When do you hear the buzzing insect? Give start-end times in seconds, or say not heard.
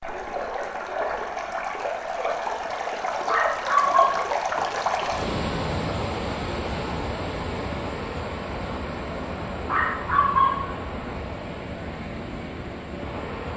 not heard.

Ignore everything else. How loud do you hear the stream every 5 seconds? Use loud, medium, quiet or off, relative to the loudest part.
loud, loud, medium.